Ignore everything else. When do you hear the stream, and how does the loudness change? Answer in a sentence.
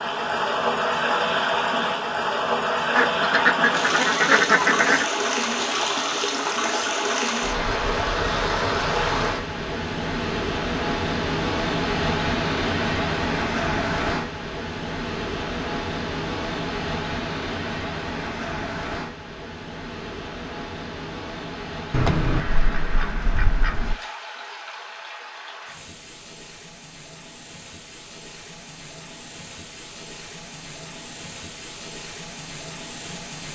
The stream can be heard from 0.0 to 33.5 s, getting quieter.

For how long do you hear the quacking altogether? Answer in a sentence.
You can hear the quacking for 4 seconds altogether.